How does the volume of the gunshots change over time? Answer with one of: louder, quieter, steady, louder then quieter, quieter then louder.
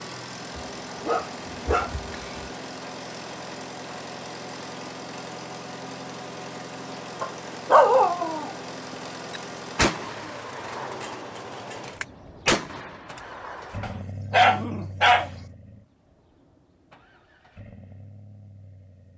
louder then quieter.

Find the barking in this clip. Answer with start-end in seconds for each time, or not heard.
0.6-2.5, 7.2-8.6, 13.8-15.3.